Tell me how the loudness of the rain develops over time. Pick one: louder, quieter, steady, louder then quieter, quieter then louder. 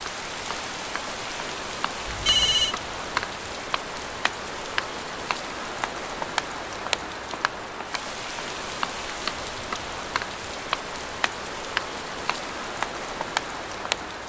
steady.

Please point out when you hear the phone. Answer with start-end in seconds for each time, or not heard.
2.0-2.8.